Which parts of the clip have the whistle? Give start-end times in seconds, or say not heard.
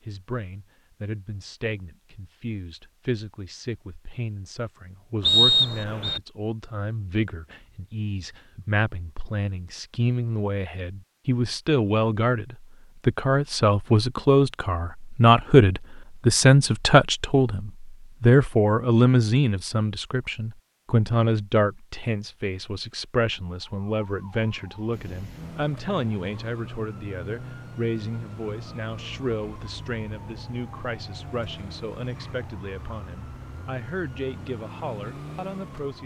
5.2-6.2.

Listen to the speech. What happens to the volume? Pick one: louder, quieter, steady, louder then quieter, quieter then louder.
louder then quieter.